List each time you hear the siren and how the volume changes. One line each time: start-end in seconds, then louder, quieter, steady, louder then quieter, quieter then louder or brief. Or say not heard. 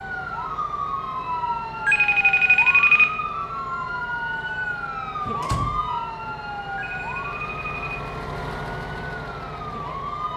0.0-10.3 quieter.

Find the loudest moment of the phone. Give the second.
3 s.